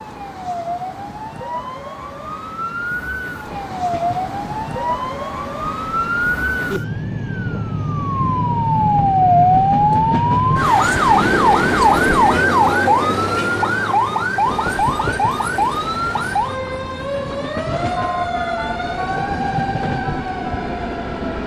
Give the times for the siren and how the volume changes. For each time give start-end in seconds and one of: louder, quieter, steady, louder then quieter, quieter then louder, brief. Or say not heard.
0.0-21.4 louder then quieter.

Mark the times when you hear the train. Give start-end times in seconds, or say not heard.
3.4-12.4, 14.4-21.4.